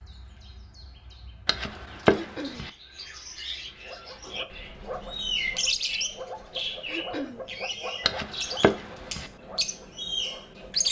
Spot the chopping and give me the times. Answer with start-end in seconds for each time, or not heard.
1.4-2.7, 8.1-9.3.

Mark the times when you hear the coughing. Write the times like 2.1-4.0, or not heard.
2.1-2.6, 6.8-7.5.